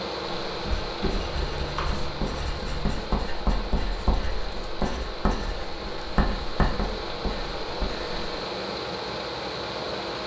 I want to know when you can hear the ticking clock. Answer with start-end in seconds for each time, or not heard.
not heard.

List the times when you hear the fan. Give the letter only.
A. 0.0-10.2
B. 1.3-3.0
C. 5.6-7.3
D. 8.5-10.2
A.